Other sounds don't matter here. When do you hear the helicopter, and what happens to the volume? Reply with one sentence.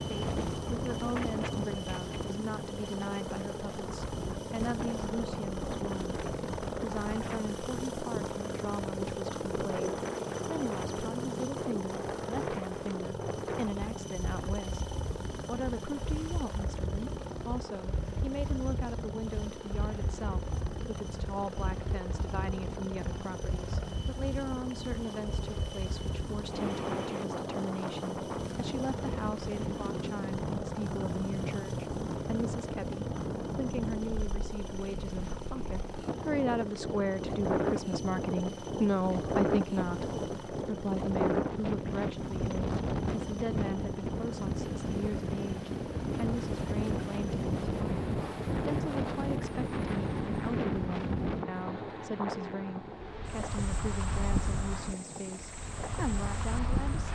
You can hear the helicopter from 0.0 to 57.1 s, getting quieter.